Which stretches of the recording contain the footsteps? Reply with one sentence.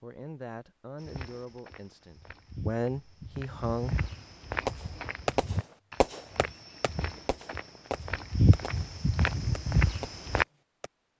You can hear the footsteps from 1.0 to 10.4 s.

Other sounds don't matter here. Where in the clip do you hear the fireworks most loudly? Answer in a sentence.
The loudest moment of the fireworks is at 5 seconds.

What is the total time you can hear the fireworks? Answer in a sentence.
The fireworks can be heard for 6 seconds in total.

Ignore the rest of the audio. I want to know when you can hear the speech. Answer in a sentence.
The speech can be heard from 0.0 to 4.0 s.